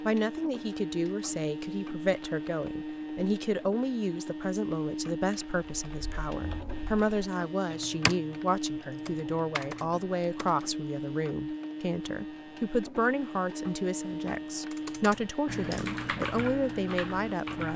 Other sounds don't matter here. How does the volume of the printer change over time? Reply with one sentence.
The volume of the printer stays about the same.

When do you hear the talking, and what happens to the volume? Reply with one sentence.
The talking can be heard from 0.0 to 17.7 s, at a steady volume.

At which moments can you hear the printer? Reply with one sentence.
You can hear the printer from 0.0 to 17.7 s.